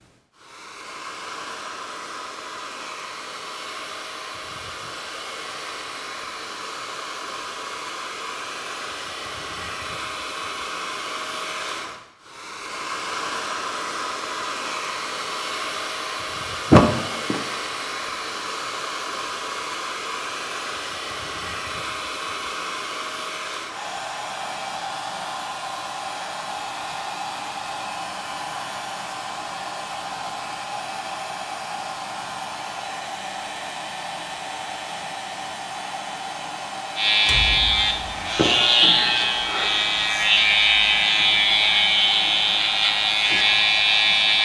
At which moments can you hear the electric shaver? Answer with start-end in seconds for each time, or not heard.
37.0-44.4.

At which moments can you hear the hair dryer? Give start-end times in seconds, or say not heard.
0.0-44.4.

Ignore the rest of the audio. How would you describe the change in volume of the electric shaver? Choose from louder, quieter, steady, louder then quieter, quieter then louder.
steady.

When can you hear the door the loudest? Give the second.
17 s.